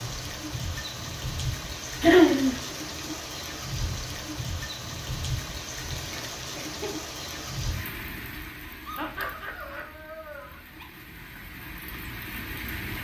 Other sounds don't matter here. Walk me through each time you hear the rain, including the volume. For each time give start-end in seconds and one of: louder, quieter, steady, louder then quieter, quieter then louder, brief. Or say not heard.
0.0-13.0 quieter.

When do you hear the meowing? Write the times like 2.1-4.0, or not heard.
not heard.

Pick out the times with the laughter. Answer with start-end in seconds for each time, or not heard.
2.0-2.6, 6.1-7.0, 8.9-9.8.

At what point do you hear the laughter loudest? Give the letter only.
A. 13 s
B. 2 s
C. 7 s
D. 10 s
B.